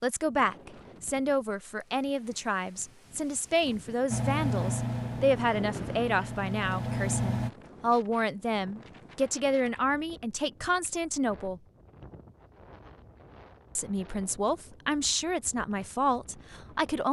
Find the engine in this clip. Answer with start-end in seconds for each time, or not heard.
4.1-7.5.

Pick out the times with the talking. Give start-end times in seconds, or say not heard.
0.0-11.6, 13.8-17.0.